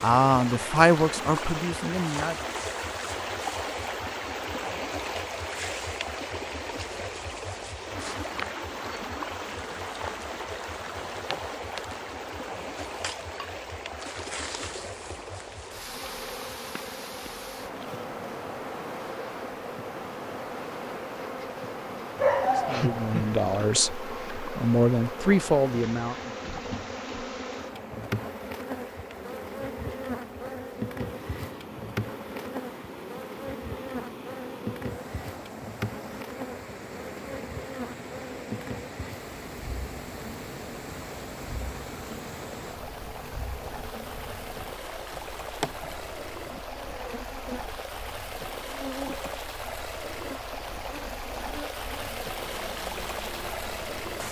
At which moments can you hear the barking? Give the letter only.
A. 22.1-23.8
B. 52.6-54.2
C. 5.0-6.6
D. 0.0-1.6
A.